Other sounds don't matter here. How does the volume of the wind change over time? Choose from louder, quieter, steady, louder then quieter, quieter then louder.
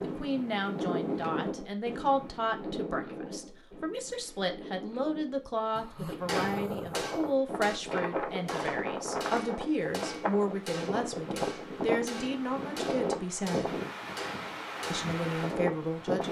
quieter then louder.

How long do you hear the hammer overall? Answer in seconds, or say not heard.
9 s.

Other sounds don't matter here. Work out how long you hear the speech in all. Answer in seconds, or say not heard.
15 s.